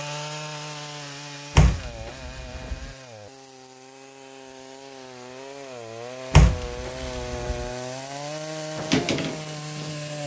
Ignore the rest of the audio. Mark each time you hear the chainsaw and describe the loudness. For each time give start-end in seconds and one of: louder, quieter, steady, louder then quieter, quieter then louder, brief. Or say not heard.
0.0-10.2 quieter then louder.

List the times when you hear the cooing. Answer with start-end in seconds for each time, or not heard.
8.8-10.2.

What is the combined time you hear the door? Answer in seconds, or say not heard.
3 s.